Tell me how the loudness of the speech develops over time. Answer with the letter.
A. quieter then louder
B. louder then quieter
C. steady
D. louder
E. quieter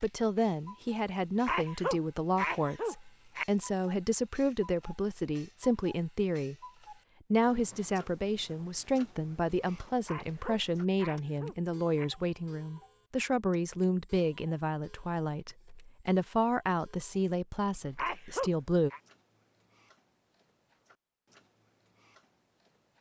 C.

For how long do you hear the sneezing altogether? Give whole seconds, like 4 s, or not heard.
5 s.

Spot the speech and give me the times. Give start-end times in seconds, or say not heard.
0.0-6.5, 7.3-18.9.